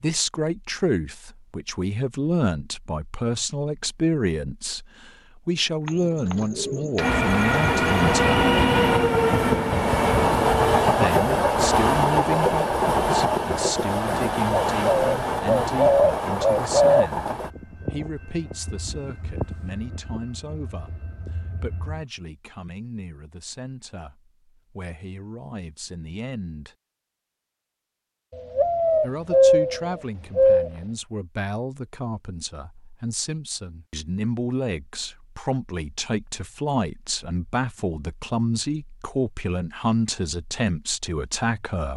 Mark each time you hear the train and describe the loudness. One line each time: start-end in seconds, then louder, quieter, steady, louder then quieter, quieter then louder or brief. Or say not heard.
7.0-22.1 quieter.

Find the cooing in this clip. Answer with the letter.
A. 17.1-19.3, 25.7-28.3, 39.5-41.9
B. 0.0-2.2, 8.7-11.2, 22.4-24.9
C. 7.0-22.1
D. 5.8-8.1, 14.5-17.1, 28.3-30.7
D.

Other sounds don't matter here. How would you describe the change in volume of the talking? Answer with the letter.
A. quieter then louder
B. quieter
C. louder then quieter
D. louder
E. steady
A.